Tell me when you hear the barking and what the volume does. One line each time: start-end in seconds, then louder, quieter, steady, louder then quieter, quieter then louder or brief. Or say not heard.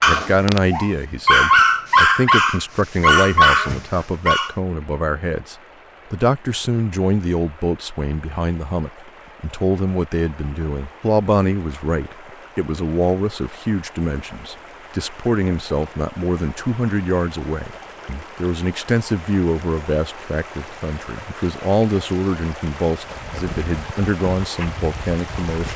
0.0-4.5 louder
23.1-25.7 brief.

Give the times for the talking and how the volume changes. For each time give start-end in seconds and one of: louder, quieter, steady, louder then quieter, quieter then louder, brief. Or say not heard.
0.0-25.7 steady.